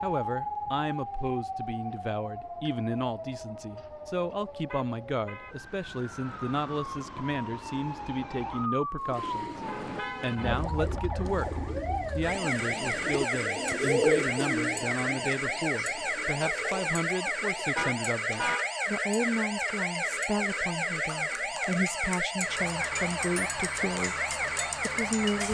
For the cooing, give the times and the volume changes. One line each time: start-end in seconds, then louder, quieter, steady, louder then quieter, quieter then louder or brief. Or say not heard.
8.9-17.9 louder then quieter.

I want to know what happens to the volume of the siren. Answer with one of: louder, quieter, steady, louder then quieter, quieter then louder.
louder.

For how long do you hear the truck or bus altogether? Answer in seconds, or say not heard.
3 s.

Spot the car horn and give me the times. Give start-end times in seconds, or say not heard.
4.7-5.5, 9.2-10.7, 17.8-18.7.